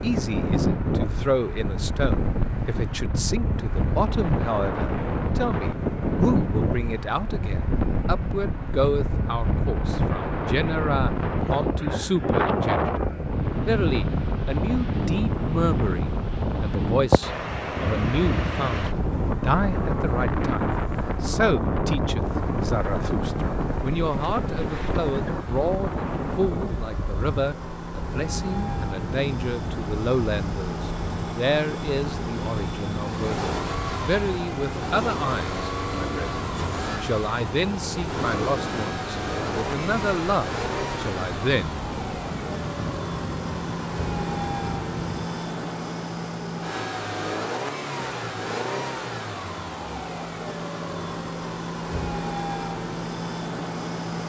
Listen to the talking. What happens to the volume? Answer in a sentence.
The loudness of the talking stays about the same.